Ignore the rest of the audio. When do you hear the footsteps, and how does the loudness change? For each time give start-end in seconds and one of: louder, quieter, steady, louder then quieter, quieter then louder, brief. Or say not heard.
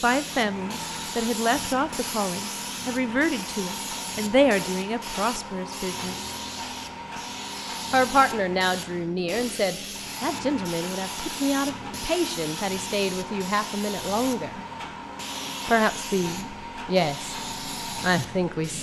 not heard.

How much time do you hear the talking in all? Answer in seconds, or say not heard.
16 s.